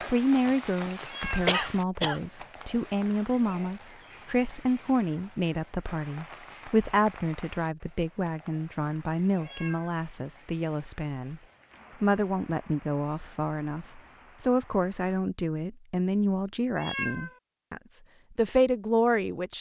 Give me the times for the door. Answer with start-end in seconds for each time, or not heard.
not heard.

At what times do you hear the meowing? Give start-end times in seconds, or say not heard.
1.1-1.5, 9.4-9.9, 16.8-17.4.